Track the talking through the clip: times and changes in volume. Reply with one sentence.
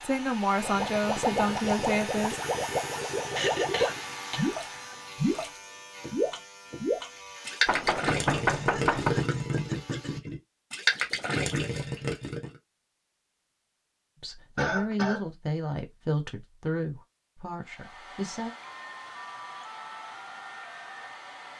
You can hear the talking briefly from 0.0 to 2.4 s; and from 14.2 to 18.5 s, getting quieter.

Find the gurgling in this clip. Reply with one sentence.
The gurgling can be heard from 0.6 to 12.5 s.